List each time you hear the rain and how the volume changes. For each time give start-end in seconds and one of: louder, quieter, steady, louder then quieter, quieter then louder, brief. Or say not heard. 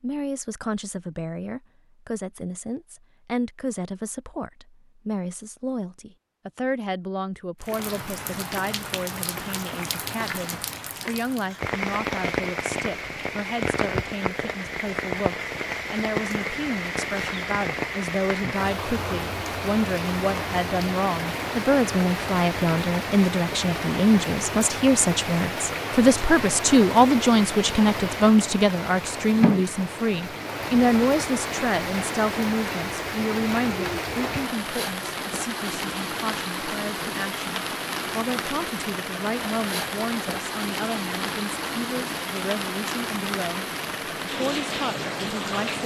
7.6-45.8 steady.